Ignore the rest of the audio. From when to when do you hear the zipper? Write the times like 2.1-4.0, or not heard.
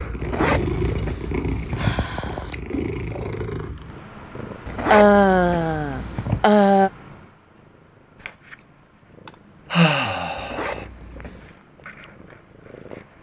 0.2-2.0, 4.7-6.5, 10.3-11.5.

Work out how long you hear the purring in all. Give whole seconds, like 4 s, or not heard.
13 s.